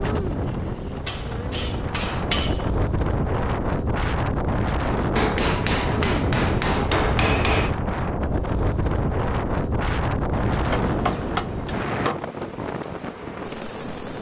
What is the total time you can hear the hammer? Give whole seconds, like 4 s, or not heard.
6 s.